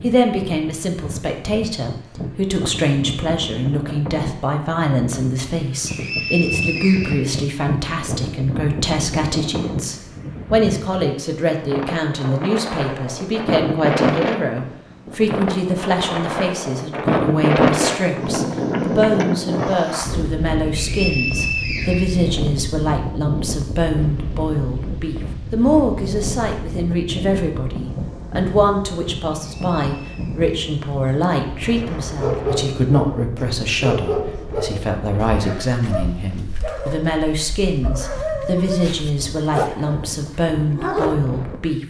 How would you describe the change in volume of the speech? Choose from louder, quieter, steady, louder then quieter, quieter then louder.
steady.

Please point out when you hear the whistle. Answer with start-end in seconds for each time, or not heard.
5.8-7.4, 20.8-22.2, 29.4-30.4.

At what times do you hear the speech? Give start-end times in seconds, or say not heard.
0.0-41.8.